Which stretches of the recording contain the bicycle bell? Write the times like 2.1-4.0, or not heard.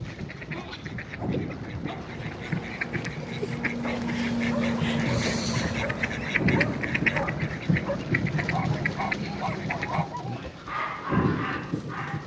not heard.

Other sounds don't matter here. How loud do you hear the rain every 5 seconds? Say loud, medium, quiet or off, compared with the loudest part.
medium, loud, loud.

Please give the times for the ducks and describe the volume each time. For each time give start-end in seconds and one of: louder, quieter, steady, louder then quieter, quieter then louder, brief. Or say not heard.
0.0-11.6 louder then quieter.